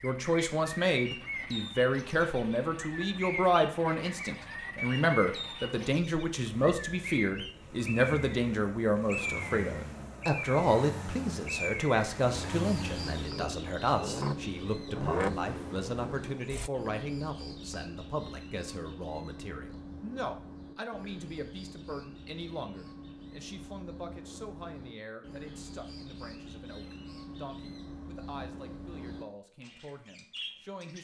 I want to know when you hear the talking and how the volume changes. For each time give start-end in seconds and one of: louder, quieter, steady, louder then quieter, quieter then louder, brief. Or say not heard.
0.0-30.9 quieter.